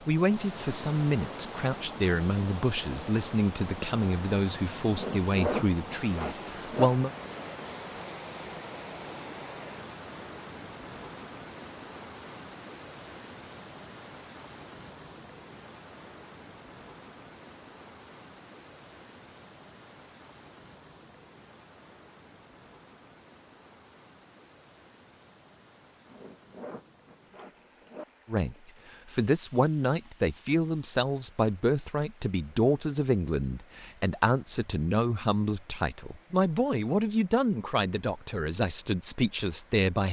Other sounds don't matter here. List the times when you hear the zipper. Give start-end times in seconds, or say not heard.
4.9-6.9, 26.1-28.1.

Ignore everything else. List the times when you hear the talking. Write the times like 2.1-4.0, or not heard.
0.1-7.1, 28.2-40.0.